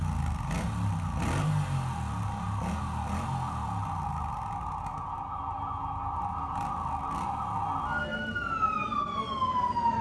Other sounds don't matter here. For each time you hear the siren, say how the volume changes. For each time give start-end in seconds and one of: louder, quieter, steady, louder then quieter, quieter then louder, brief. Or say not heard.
0.0-9.9 louder.